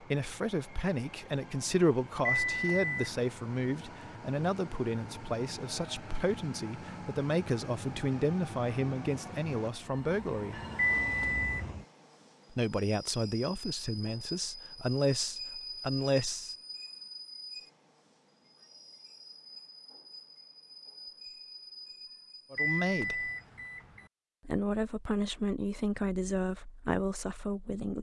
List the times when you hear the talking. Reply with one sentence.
You can hear the talking from 0.0 to 10.6 s, from 12.5 to 16.6 s, from 22.5 to 23.3 s and from 24.4 to 27.9 s.